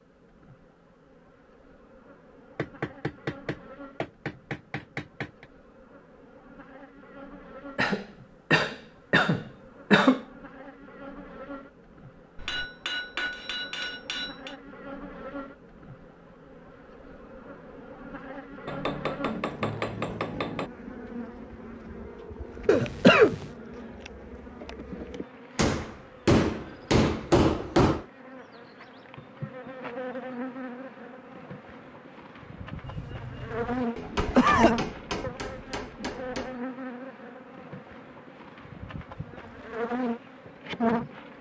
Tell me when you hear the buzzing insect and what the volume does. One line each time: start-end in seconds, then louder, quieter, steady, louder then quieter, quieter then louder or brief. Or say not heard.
0.0-41.3 louder.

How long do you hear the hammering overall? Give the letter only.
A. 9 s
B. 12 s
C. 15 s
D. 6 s
B.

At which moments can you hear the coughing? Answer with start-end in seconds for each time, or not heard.
7.8-10.2, 22.6-23.4, 32.8-34.9.